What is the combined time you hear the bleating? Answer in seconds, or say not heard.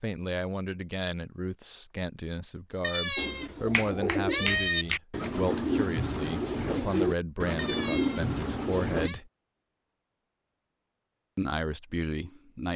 4 s.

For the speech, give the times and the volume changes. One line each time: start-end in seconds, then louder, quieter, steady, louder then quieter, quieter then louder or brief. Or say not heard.
0.0-9.3 steady
11.3-12.7 brief.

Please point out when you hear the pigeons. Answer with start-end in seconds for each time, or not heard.
3.1-9.1.